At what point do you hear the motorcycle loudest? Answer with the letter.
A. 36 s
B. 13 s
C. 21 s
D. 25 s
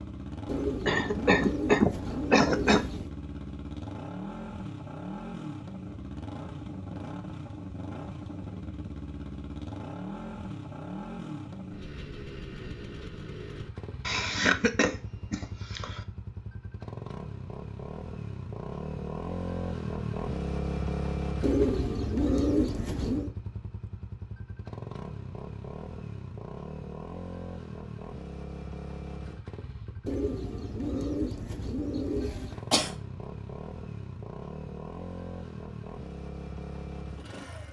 C.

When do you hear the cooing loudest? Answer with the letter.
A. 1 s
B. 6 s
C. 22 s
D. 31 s
C.